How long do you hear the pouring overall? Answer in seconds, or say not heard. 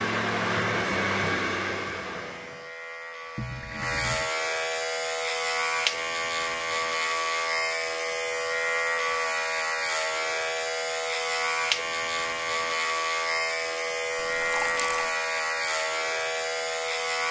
2 s.